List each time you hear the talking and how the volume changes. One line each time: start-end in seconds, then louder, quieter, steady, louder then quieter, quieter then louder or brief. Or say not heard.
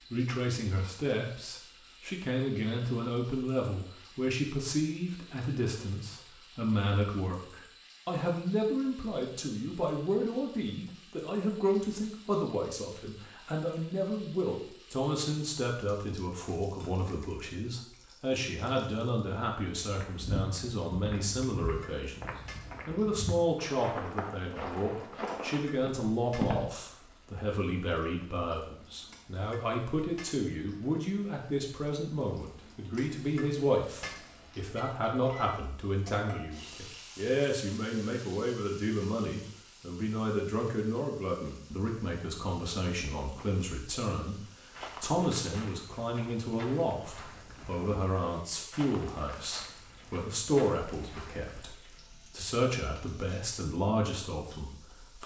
0.1-55.2 steady.